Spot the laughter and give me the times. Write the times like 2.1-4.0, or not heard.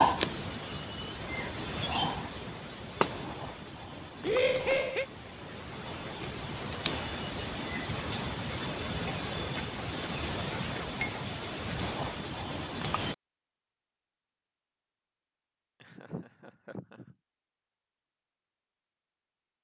4.2-5.0, 15.8-17.1.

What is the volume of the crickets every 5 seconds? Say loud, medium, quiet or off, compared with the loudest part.
loud, loud, loud, off.